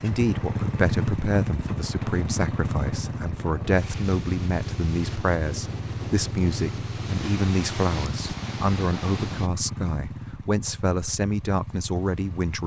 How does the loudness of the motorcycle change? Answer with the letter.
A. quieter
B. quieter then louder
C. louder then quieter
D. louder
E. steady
A.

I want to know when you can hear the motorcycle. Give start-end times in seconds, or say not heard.
0.0-12.6.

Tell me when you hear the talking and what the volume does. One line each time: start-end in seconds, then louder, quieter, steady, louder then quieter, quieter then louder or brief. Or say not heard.
0.0-12.6 steady.